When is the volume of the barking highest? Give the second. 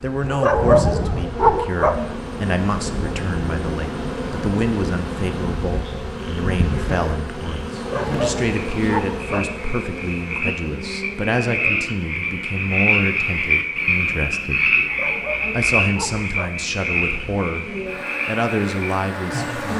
1 s.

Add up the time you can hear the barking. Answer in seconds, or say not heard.
5 s.